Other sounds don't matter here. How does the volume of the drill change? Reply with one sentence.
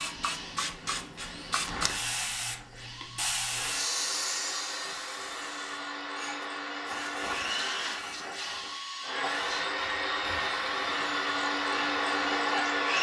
The volume of the drill goes up.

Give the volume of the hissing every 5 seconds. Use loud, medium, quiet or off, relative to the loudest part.
loud, medium, medium.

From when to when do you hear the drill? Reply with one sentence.
The drill can be heard from 0.0 to 12.9 s.